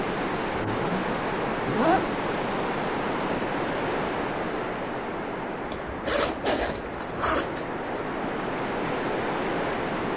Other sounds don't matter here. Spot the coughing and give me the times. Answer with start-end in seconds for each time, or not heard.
6.2-7.0.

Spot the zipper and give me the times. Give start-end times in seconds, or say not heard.
0.7-2.1, 5.7-7.7.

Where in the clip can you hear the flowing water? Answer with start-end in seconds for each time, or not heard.
0.0-10.1.